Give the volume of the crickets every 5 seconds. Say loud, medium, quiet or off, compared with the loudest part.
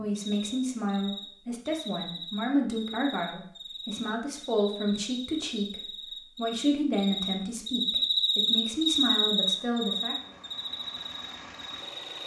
quiet, loud, medium.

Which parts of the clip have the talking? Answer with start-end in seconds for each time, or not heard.
0.0-5.8, 6.3-10.2.